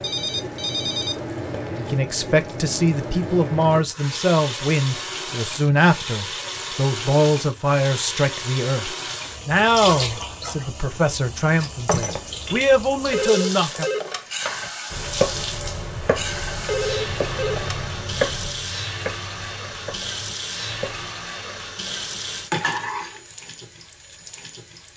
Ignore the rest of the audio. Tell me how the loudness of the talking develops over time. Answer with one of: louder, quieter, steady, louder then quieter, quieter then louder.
steady.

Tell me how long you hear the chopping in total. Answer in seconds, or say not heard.
7 s.